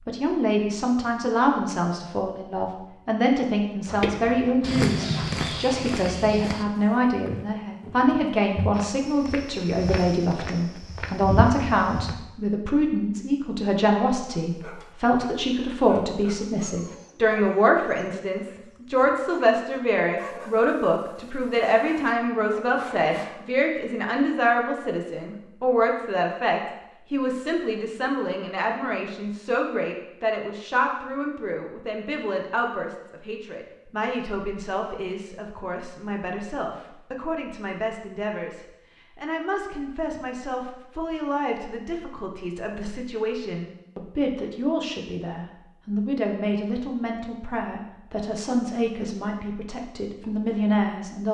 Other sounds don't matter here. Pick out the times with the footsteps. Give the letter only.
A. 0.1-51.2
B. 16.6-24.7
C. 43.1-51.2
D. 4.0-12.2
D.